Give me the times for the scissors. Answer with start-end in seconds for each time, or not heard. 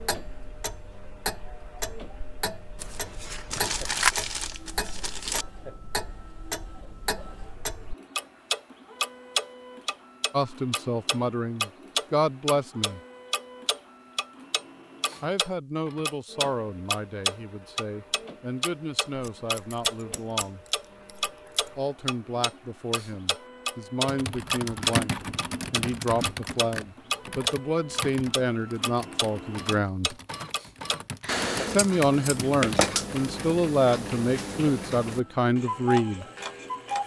2.8-4.1, 19.1-21.7, 31.2-33.0.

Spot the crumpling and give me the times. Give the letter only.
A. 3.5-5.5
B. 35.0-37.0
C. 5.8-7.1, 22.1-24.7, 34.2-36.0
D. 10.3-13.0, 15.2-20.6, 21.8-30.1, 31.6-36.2
A.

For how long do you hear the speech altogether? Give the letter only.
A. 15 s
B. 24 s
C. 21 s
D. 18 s
C.